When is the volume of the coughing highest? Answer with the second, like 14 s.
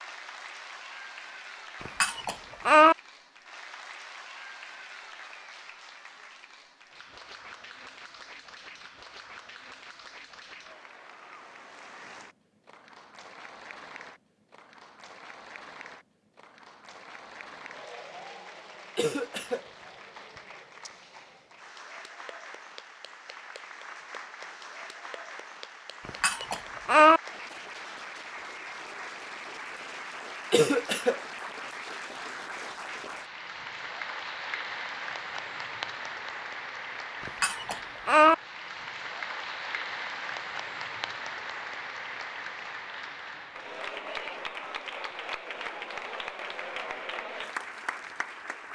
31 s.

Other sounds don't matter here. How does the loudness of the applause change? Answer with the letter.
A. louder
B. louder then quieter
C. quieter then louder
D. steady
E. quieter
A.